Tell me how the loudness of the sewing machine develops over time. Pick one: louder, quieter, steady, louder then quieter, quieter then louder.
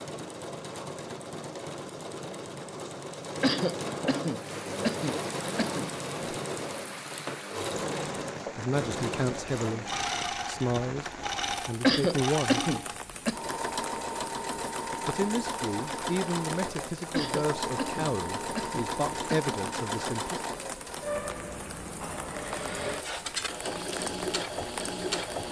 steady.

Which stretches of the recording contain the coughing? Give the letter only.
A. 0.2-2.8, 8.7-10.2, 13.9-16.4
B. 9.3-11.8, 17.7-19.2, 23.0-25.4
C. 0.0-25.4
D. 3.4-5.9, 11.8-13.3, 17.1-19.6
D.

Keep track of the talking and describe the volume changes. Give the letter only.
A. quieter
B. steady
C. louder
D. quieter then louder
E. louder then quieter
B.